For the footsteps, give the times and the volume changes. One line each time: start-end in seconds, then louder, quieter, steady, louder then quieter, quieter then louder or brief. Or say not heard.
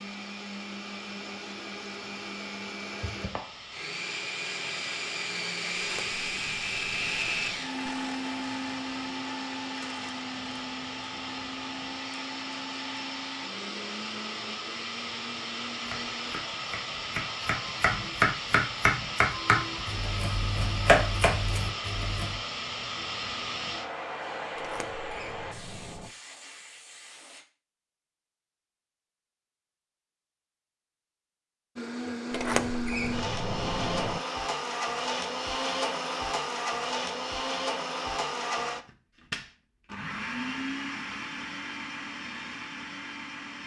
not heard.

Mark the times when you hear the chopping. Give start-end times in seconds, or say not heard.
15.8-22.4.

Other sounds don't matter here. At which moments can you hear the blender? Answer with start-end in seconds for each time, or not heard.
0.0-16.4, 31.8-43.6.